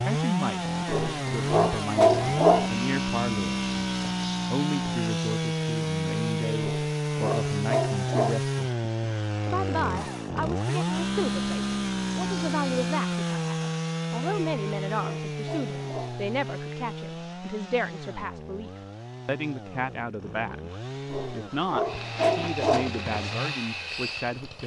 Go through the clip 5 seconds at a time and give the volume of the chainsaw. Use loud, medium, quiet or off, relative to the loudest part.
loud, loud, loud, medium, medium.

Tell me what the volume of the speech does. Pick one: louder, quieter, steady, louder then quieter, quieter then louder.
steady.